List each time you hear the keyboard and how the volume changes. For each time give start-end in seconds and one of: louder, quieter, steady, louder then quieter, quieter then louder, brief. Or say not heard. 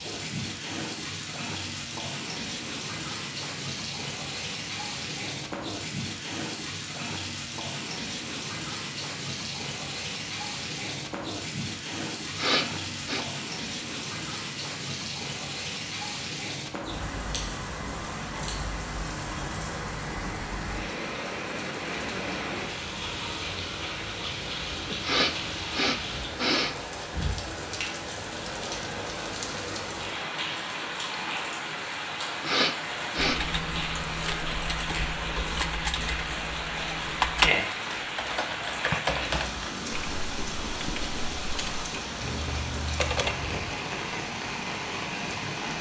33.1-43.5 louder then quieter.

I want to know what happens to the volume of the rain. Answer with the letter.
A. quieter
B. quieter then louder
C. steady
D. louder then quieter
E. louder
C.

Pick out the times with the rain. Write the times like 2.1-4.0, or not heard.
0.0-45.7.